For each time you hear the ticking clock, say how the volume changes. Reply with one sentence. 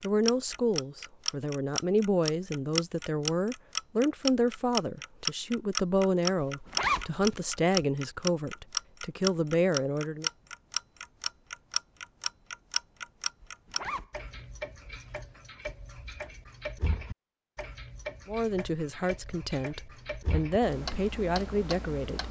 The ticking clock can be heard from 0.0 to 22.2 s, getting quieter.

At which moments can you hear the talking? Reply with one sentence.
The talking can be heard from 0.0 to 10.3 s and from 18.2 to 22.2 s.